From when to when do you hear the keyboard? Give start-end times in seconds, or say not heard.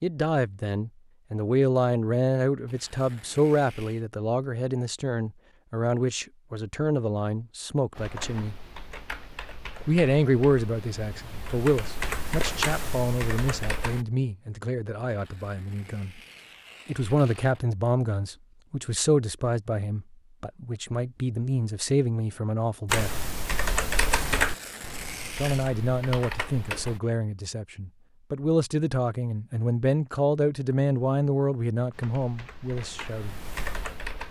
7.9-14.1, 22.9-27.0, 31.9-34.2.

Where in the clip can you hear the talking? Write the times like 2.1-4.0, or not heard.
0.0-8.6, 9.8-16.2, 16.9-23.1, 25.4-33.4.